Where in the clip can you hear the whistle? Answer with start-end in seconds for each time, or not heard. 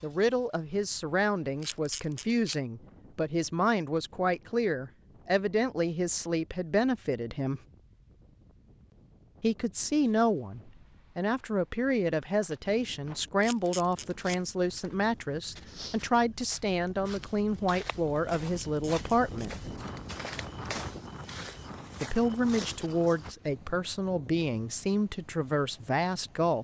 not heard.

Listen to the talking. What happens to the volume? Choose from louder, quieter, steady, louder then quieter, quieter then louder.
steady.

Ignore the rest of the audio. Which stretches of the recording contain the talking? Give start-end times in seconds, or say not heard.
0.0-7.6, 9.4-19.6, 22.0-26.5.